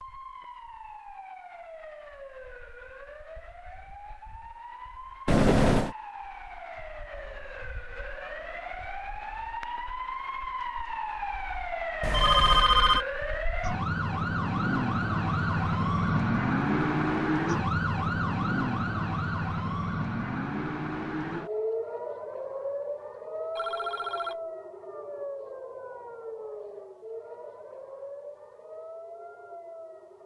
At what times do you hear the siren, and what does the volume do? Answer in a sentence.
The siren can be heard from 0.0 to 30.2 s, getting louder then quieter.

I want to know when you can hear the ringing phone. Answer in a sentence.
The ringing phone can be heard from 5.2 to 6.0 s, from 12.0 to 13.1 s and from 23.6 to 24.4 s.